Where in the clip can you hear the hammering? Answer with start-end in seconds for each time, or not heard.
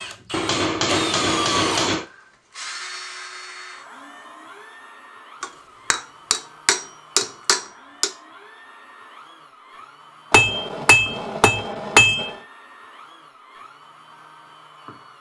0.3-2.0, 5.4-8.1, 10.3-12.3.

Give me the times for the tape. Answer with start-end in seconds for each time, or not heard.
not heard.